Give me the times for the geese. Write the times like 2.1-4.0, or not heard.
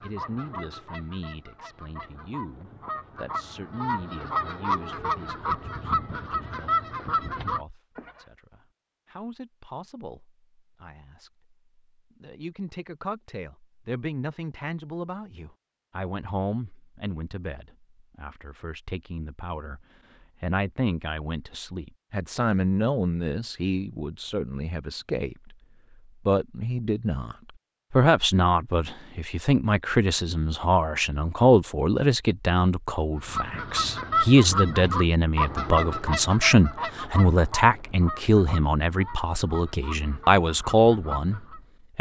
0.0-8.1, 33.2-41.6.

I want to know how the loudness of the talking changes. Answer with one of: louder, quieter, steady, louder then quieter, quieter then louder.
louder.